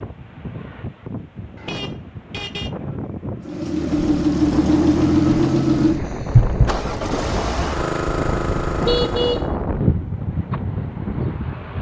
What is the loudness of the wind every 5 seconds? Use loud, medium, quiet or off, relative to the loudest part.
medium, loud, loud.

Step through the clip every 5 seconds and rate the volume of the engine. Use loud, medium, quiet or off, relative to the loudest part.
loud, loud, off.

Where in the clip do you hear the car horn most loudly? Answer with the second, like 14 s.
9 s.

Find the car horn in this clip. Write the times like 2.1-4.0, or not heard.
1.6-2.8, 8.8-10.1.